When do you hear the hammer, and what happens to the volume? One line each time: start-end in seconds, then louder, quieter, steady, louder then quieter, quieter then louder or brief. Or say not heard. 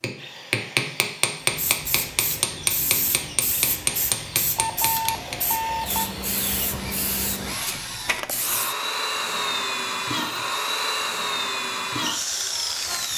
0.0-5.4 quieter.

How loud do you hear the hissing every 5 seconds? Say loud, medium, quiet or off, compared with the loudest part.
loud, loud, off.